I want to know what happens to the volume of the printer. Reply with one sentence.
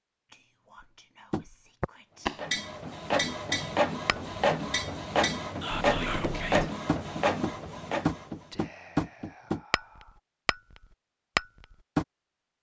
The loudness of the printer stays about the same.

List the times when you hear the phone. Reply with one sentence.
You can't hear the phone here.